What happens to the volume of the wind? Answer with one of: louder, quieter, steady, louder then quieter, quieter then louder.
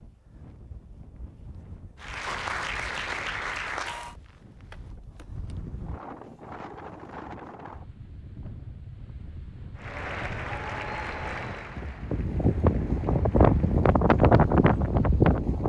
louder.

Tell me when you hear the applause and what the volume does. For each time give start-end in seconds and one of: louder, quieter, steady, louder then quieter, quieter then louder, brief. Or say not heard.
1.9-4.2 brief
9.8-13.9 quieter.